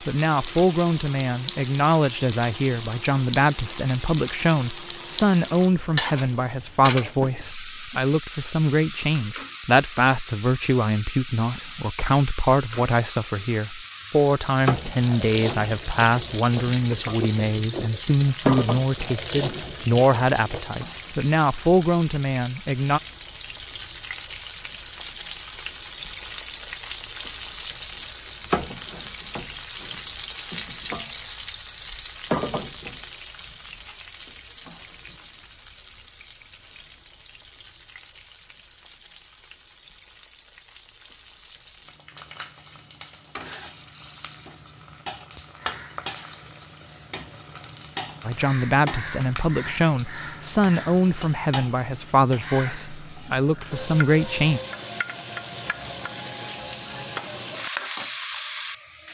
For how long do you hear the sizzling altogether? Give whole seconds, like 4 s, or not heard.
59 s.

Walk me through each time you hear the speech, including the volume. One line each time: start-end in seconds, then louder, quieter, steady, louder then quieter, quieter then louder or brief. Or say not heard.
0.1-23.0 steady
48.2-54.6 steady.